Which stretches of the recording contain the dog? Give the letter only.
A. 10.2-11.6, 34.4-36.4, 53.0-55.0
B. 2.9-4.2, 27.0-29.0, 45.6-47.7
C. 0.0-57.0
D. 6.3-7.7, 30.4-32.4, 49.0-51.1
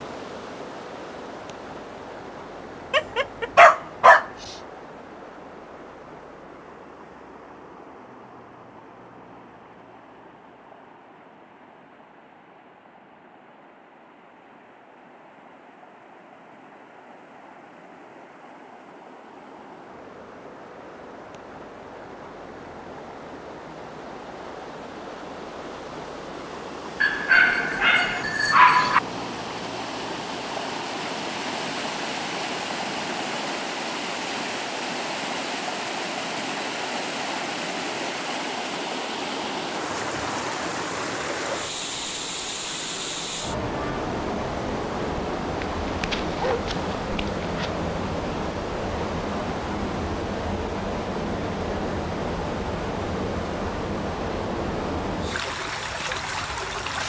B.